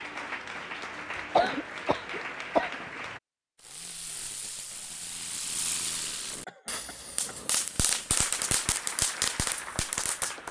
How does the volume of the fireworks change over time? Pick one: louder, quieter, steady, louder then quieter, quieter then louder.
louder.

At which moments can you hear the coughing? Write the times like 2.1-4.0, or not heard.
1.1-2.8, 6.3-7.3.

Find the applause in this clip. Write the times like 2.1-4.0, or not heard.
0.0-3.2, 8.1-10.4.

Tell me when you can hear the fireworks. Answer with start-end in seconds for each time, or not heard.
3.6-10.4.